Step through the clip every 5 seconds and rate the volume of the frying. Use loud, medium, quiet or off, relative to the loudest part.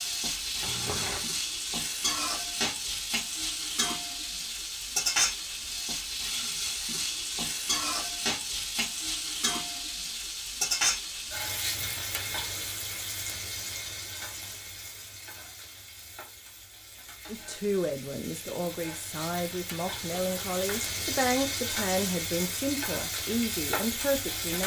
loud, loud, loud, quiet, loud.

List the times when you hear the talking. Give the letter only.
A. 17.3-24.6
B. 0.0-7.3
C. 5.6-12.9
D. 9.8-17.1
A.